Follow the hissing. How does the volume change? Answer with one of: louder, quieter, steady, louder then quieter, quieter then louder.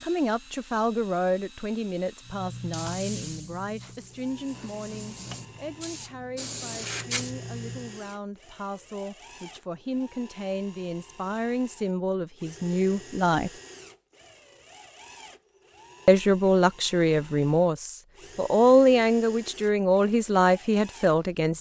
quieter then louder.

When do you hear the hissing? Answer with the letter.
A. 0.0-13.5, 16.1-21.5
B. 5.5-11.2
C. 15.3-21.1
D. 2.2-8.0
D.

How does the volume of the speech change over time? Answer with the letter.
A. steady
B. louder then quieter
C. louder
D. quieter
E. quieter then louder
E.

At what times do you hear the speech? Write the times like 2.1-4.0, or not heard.
0.0-13.5, 16.1-21.5.